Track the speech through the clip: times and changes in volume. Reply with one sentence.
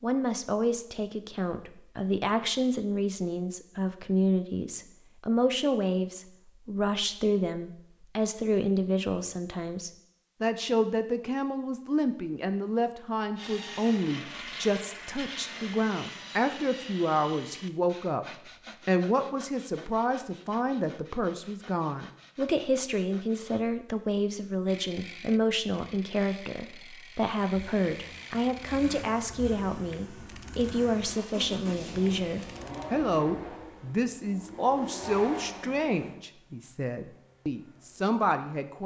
The speech can be heard from 0.0 to 18.2 s, at a steady volume; and from 18.9 to 38.8 s, at a steady volume.